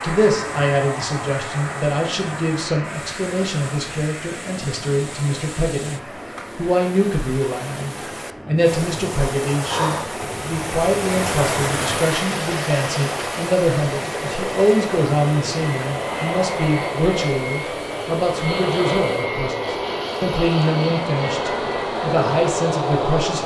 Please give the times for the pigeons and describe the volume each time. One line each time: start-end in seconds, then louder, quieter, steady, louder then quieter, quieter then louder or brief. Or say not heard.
not heard.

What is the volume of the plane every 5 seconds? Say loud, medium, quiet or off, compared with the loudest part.
medium, quiet, medium, loud, loud.